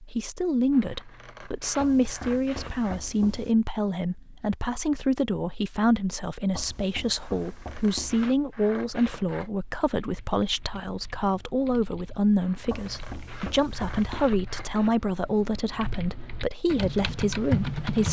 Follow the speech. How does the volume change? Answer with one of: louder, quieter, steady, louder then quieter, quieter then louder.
steady.